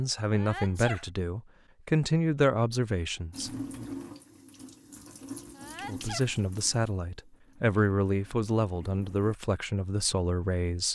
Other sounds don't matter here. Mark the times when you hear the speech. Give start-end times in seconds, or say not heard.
0.0-3.5, 5.8-10.9.